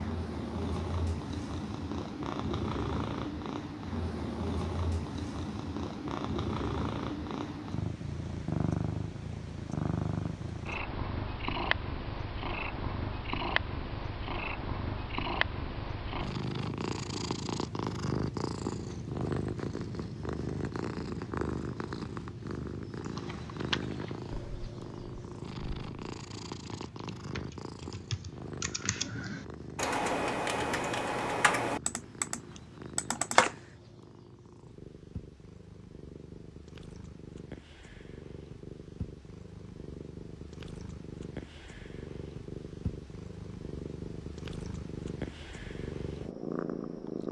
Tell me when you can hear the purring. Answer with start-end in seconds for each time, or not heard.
0.0-47.2.